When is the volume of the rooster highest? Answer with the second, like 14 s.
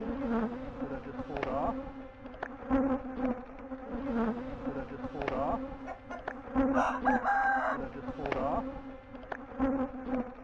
7 s.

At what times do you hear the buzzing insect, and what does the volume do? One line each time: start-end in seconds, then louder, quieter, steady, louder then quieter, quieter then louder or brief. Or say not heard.
0.0-10.3 steady.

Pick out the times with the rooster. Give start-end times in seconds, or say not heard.
5.8-7.8.